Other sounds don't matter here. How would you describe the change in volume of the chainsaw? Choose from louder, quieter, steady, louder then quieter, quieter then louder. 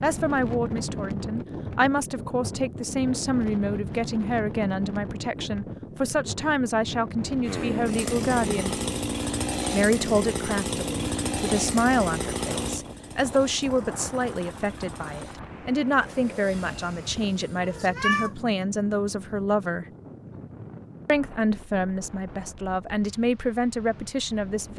quieter.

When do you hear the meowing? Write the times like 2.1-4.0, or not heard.
17.6-18.3.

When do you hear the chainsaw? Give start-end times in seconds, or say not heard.
7.4-17.9.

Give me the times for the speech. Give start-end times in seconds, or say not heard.
0.0-8.8, 9.7-19.9, 21.1-24.7.